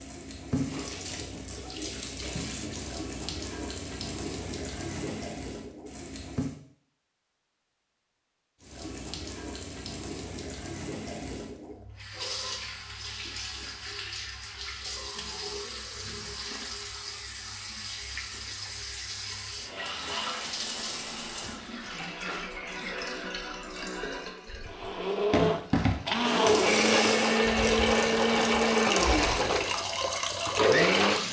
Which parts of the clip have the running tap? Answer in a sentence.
The running tap can be heard from 0.0 to 6.5 s and from 8.6 to 31.2 s.